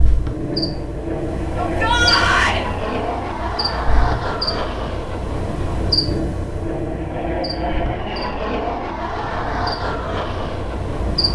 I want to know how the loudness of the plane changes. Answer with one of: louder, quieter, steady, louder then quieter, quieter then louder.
steady.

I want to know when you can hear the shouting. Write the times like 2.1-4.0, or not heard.
1.6-2.6.